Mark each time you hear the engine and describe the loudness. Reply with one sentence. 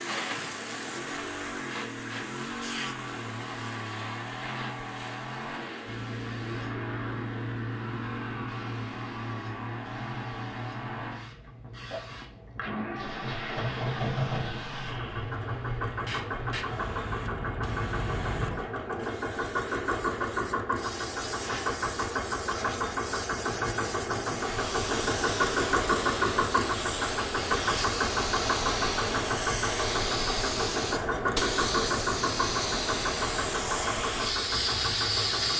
The engine can be heard from 0.0 to 35.5 s, getting louder.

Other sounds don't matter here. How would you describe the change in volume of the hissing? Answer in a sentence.
The volume of the hissing goes up.